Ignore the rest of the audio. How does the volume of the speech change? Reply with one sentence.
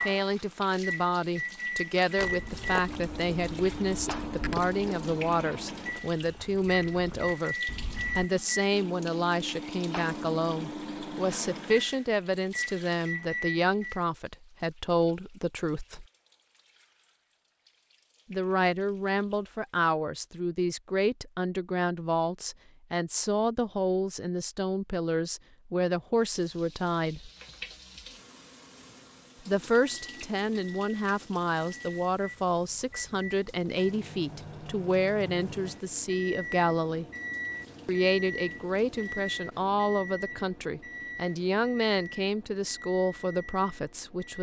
The loudness of the speech stays about the same.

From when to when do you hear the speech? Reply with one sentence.
The speech can be heard from 0.1 to 7.5 s, from 8.2 to 16.1 s, from 18.3 to 27.3 s, from 29.4 to 37.0 s and from 37.9 to 44.3 s.